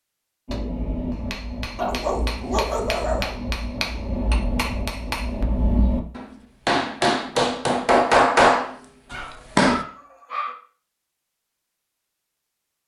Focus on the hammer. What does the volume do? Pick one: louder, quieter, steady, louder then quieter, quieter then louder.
louder.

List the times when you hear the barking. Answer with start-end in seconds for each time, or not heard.
1.8-3.4, 9.1-10.6.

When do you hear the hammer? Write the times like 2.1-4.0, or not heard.
0.5-9.8.